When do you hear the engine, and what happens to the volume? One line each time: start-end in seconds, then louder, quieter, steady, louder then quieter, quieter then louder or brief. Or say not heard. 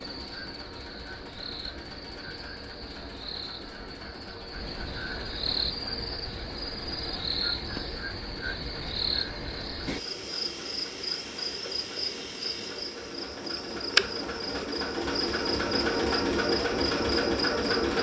0.0-17.9 louder.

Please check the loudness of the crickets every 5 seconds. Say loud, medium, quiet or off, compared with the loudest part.
medium, loud, loud, loud.